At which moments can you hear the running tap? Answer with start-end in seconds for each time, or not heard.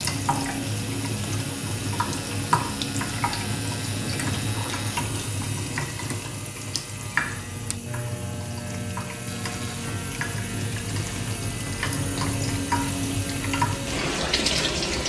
0.0-15.0.